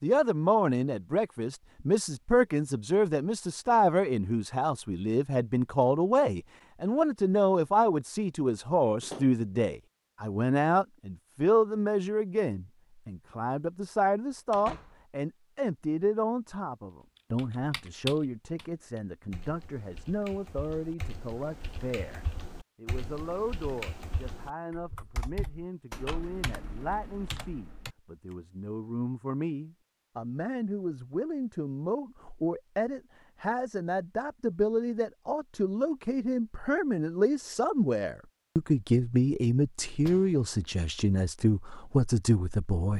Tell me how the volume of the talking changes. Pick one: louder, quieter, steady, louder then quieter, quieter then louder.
quieter then louder.